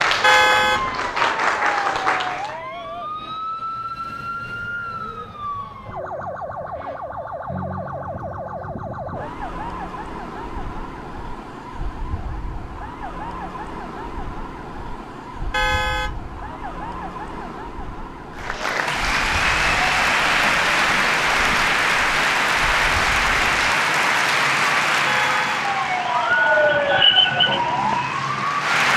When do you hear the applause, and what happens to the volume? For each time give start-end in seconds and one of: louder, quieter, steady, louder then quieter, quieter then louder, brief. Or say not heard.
0.0-2.6 brief
18.4-28.9 quieter.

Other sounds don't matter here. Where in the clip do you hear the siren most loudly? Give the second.
27 s.